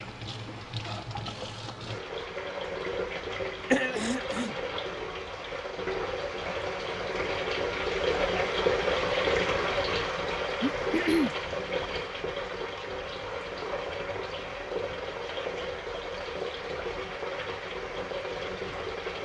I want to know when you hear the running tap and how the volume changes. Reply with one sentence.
You can hear the running tap from 0.0 to 19.2 s, getting louder then quieter.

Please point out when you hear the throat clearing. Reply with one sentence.
The throat clearing can be heard from 3.7 to 4.5 s and from 10.6 to 11.3 s.